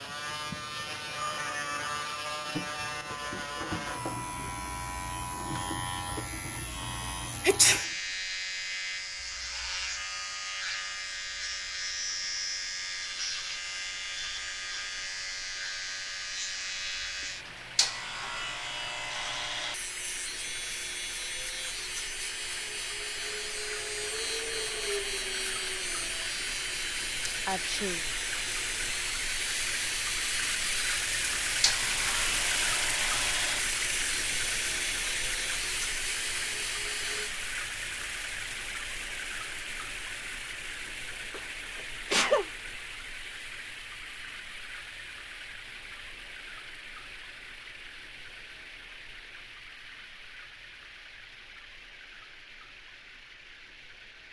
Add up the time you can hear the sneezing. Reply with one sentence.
The sneezing can be heard for 2 seconds in total.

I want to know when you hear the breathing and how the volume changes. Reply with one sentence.
The breathing can't be heard in this clip.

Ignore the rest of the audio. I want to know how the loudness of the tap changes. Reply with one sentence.
The loudness of the tap goes up, then down.